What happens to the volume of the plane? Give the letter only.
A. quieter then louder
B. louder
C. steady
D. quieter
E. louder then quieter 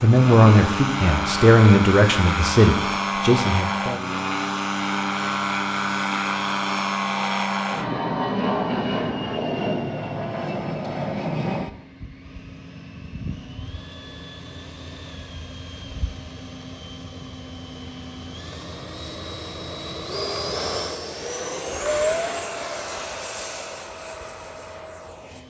A.